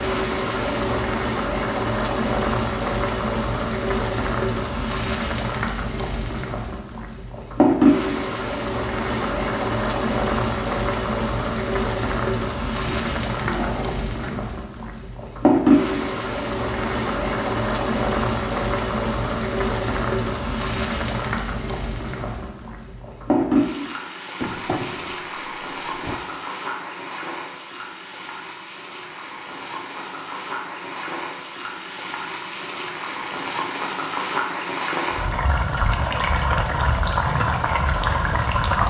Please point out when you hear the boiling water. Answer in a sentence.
The boiling water can be heard from 0.0 to 38.8 s.